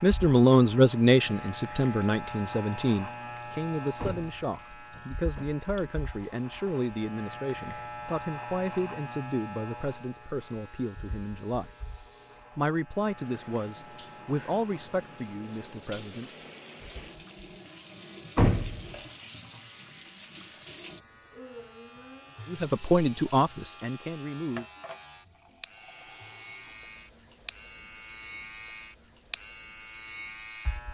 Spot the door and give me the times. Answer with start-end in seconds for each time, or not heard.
4.0-5.5, 18.4-18.9.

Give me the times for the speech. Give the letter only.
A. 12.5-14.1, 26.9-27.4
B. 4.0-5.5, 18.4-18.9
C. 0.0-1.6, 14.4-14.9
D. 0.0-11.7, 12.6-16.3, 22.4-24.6
D.